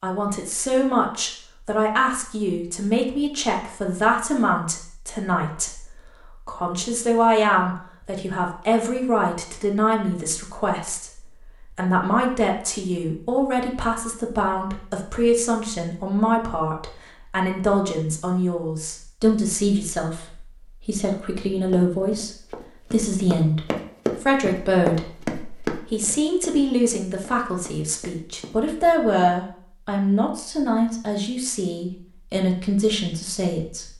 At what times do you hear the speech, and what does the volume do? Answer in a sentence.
The speech can be heard from 0.0 to 33.9 s, at a steady volume.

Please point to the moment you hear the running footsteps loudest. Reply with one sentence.
The volume of the running footsteps peaks at 25 seconds.